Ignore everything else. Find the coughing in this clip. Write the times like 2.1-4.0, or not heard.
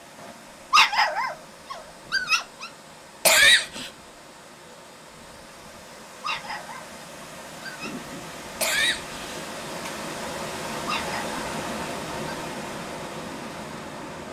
3.2-3.9, 8.6-9.9.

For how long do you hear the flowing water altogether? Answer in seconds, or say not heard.
14 s.